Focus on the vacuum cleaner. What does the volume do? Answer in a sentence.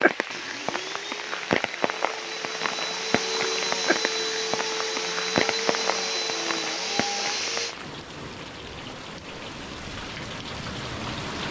The loudness of the vacuum cleaner goes up.